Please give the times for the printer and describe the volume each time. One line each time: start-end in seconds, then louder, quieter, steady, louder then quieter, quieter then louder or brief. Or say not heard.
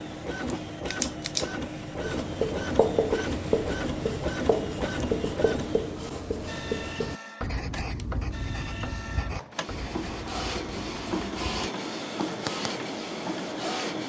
0.0-14.0 quieter then louder.